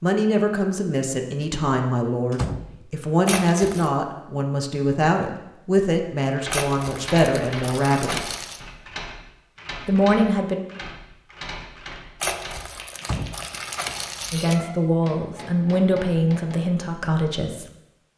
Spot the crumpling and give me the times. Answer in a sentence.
The crumpling can be heard from 3.2 to 3.9 s, from 6.5 to 8.6 s and from 12.2 to 14.6 s.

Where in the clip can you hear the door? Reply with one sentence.
The door can be heard from 2.3 to 2.8 s and from 13.0 to 13.9 s.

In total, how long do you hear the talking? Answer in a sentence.
You can hear the talking for 12 seconds altogether.